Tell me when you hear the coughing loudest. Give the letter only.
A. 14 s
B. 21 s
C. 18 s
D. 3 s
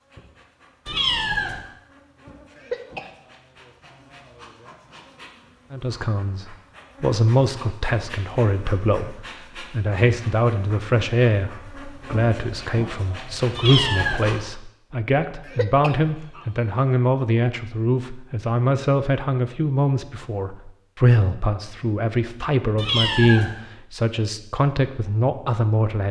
D.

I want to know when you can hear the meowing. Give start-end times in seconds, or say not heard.
0.8-1.6, 13.6-14.2, 22.8-23.5.